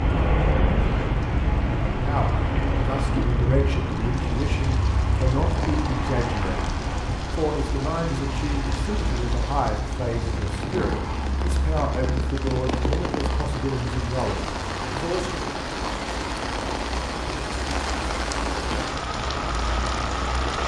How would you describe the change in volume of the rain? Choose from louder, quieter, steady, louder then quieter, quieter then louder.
louder.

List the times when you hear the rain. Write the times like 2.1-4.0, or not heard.
0.0-20.6.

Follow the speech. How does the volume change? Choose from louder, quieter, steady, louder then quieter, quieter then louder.
steady.